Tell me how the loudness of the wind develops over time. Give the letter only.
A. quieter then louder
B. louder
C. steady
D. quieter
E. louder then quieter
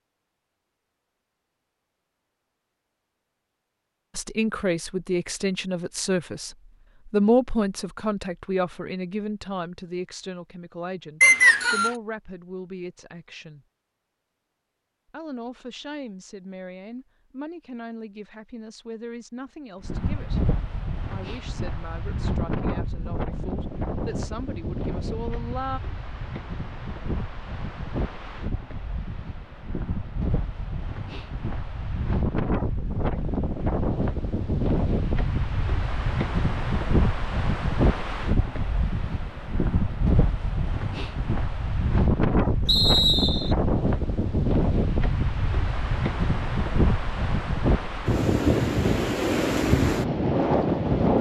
B.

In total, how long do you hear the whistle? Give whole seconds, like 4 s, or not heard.
2 s.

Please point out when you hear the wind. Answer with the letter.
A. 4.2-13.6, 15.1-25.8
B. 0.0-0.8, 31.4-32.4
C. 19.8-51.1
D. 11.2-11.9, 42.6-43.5
C.